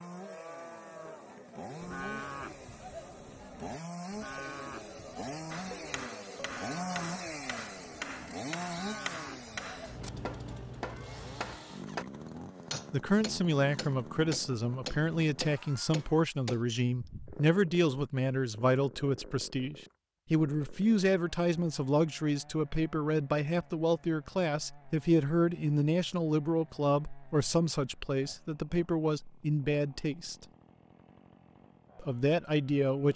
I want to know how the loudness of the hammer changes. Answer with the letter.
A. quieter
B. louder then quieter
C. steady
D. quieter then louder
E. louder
E.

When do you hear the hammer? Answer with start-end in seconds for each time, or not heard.
5.5-16.6.